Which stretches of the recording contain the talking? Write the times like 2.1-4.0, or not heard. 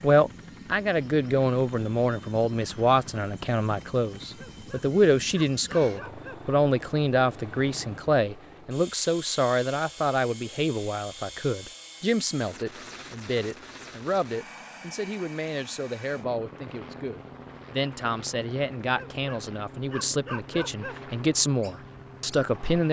0.0-22.8.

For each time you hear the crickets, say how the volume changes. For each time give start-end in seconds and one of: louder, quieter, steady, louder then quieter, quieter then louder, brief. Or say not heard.
not heard.